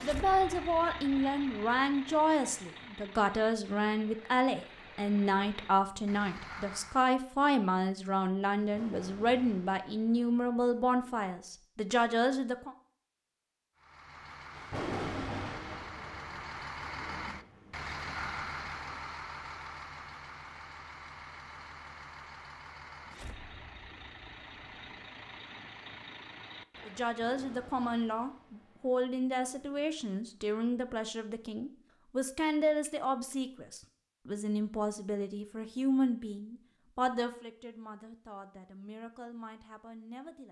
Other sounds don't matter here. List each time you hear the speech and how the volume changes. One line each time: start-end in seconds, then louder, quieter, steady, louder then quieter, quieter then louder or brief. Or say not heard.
0.0-12.8 steady
26.9-40.4 quieter.